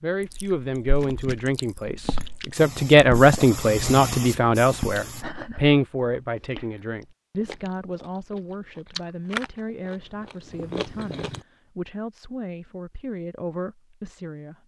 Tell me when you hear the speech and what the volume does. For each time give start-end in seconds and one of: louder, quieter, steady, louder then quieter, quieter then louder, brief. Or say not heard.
0.0-14.6 quieter.